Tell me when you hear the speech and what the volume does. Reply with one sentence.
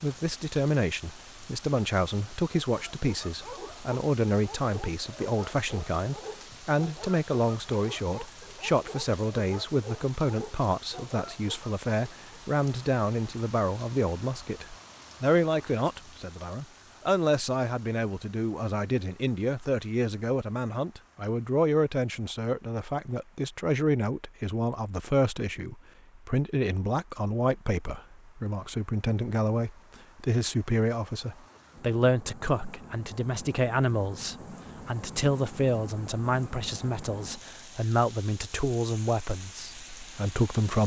The speech can be heard from 0.0 to 40.8 s, at a steady volume.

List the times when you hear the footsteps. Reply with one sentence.
The footsteps can't be heard in this clip.